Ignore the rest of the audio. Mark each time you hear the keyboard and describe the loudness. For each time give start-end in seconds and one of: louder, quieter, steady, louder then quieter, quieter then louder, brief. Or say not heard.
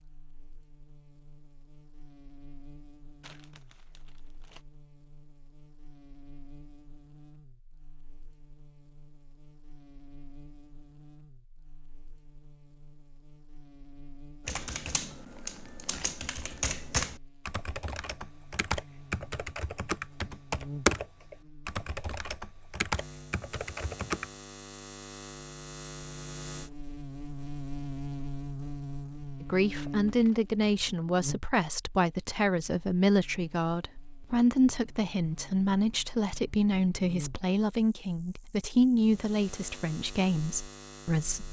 14.4-24.3 louder then quieter.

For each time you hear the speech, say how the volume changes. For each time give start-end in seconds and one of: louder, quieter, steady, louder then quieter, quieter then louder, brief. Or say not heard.
29.4-41.4 steady.